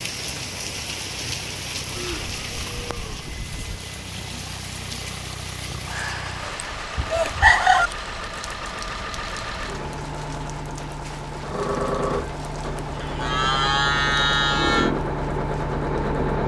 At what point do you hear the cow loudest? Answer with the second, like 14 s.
14 s.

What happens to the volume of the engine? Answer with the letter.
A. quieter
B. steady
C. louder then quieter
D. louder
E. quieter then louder
D.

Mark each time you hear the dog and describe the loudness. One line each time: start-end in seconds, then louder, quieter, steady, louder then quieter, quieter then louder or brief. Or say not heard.
not heard.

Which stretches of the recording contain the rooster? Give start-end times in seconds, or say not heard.
5.9-7.9.